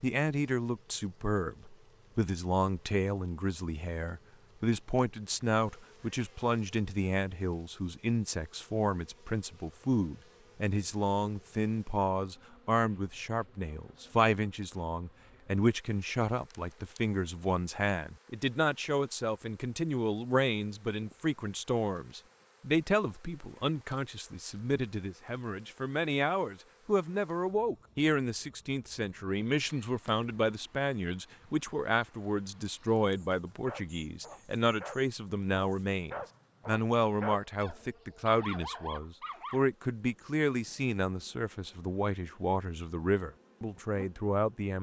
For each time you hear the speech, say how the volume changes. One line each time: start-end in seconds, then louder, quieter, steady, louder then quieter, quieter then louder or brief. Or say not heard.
0.0-44.7 steady.